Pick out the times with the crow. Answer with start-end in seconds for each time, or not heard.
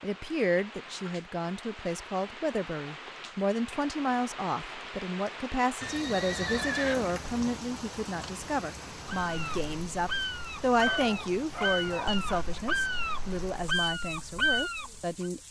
9.2-15.2.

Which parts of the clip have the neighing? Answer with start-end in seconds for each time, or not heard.
5.8-7.6.